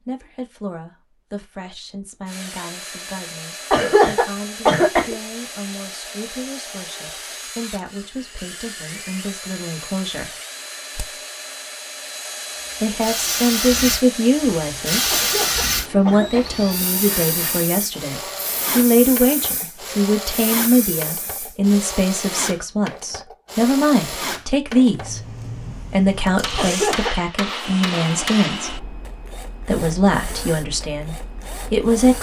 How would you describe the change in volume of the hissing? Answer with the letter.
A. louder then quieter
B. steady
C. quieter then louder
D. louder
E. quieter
E.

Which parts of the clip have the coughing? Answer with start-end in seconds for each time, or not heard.
3.7-5.2, 15.1-16.6, 26.6-27.1.